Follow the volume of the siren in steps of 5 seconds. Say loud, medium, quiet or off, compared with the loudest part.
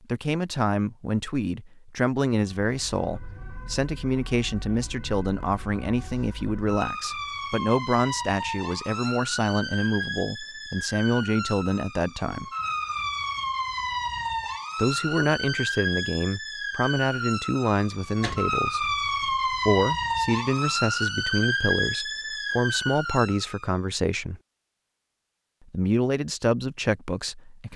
quiet, medium, loud, loud, loud, off.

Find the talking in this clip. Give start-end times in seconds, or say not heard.
0.1-12.4, 14.8-24.4, 25.7-27.7.